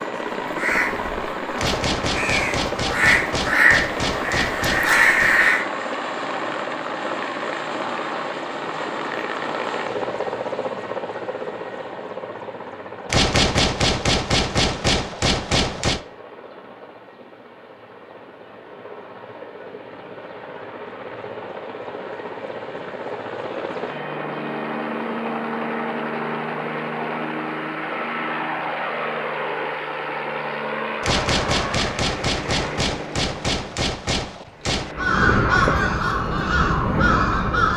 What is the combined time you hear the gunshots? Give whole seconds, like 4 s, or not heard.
11 s.